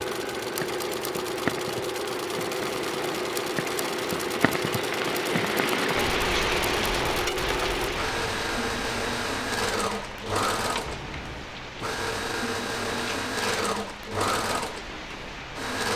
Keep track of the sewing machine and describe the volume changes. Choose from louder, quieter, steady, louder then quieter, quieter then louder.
steady.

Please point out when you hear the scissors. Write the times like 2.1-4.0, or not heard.
10.8-11.5.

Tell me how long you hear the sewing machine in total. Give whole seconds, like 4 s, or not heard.
16 s.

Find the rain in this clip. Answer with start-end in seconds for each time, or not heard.
0.0-15.8.